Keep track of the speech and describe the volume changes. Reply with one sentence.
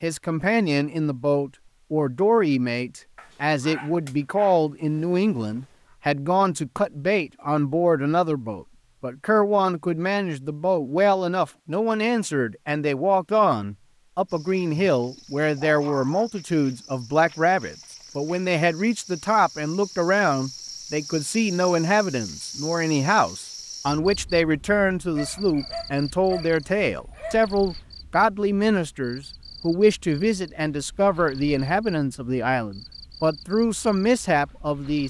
The volume of the speech stays about the same.